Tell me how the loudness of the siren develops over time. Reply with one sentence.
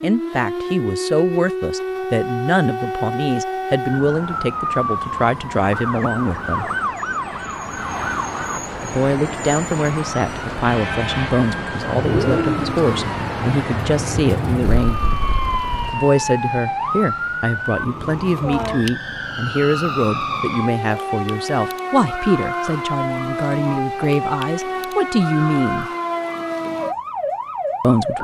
The loudness of the siren stays about the same.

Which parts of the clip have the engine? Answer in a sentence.
The engine can be heard from 11.9 to 16.1 s.